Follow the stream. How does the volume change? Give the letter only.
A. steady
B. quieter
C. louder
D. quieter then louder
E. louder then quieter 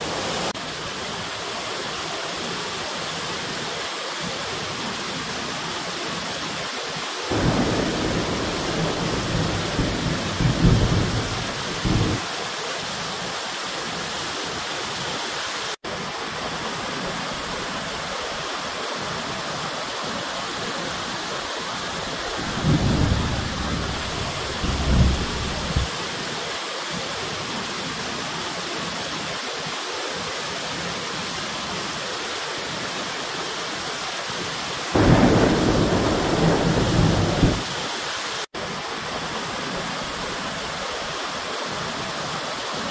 A.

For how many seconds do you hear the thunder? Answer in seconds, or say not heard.
11 s.